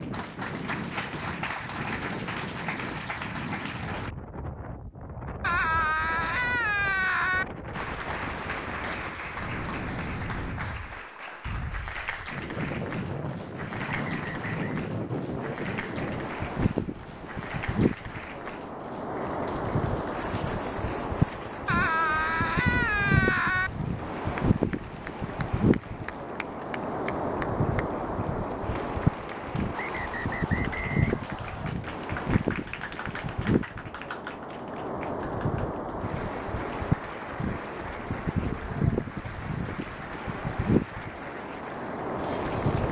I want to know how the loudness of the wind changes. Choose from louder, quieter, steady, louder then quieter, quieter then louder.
louder.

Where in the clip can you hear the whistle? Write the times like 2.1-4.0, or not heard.
13.8-14.8, 29.7-31.8.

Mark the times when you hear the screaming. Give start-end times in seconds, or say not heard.
5.4-7.5, 21.6-23.7.